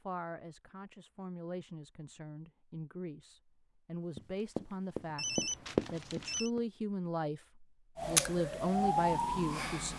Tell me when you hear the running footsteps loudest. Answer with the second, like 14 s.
6 s.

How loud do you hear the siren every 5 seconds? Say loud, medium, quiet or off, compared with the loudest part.
off, loud.